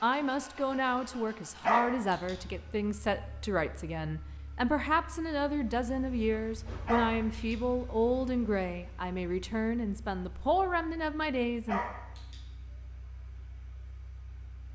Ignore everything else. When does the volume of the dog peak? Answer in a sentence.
The loudest moment of the dog is at 2 seconds.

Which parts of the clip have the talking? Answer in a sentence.
You can hear the talking from 0.0 to 11.8 s.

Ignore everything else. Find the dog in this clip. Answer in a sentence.
You can hear the dog from 1.6 to 2.4 s, from 6.8 to 7.5 s and from 11.7 to 12.4 s.